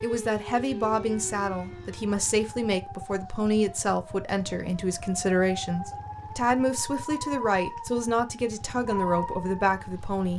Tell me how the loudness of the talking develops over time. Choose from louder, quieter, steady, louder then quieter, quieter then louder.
steady.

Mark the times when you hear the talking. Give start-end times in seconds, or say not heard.
0.0-10.3.